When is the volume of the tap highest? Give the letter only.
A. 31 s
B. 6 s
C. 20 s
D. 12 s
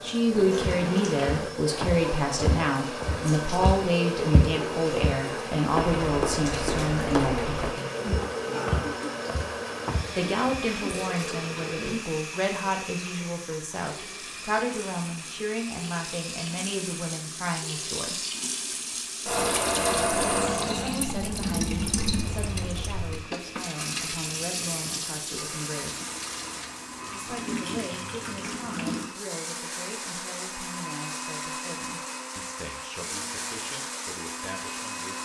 C.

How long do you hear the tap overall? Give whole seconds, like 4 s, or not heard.
29 s.